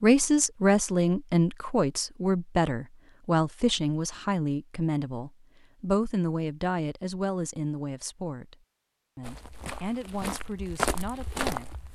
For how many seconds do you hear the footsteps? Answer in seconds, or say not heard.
3 s.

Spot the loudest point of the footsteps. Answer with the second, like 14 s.
11 s.